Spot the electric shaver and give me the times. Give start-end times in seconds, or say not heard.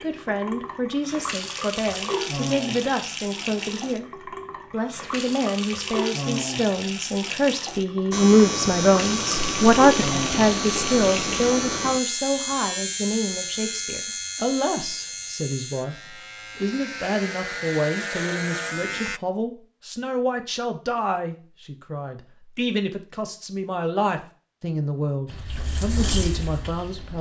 8.1-19.2.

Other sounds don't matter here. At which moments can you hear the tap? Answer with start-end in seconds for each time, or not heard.
0.0-11.6, 25.2-27.1.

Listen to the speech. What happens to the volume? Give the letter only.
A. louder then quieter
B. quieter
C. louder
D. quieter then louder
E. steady
A.